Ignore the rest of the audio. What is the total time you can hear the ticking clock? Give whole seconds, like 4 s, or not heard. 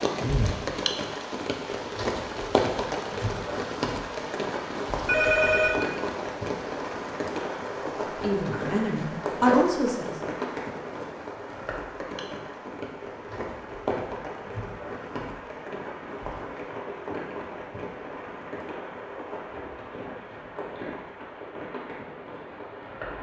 not heard.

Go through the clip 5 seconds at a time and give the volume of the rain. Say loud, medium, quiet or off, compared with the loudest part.
loud, loud, medium, medium, medium.